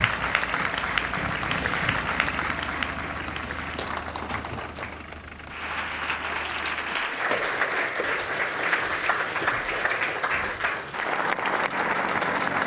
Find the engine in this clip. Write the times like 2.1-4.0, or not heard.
0.0-7.0, 8.3-12.6.